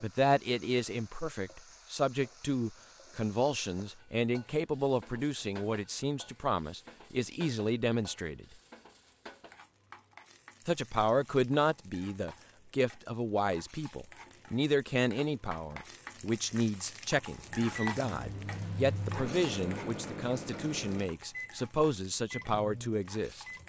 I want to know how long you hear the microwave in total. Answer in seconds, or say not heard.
6 s.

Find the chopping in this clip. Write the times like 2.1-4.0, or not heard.
not heard.